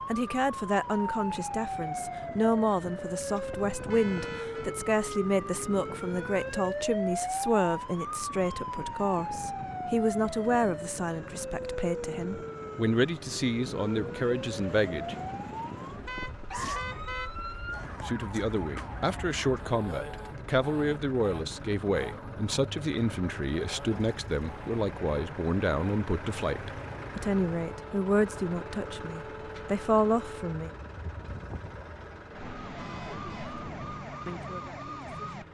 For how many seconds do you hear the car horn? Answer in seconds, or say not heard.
3 s.